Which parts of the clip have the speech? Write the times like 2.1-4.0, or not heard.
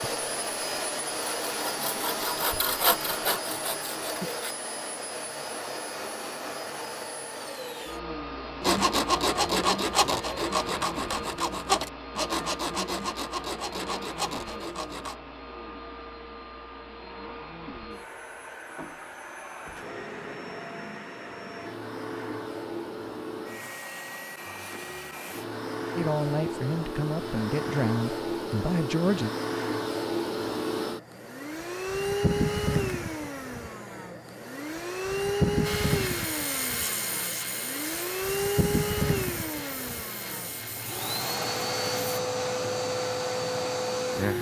25.9-29.3.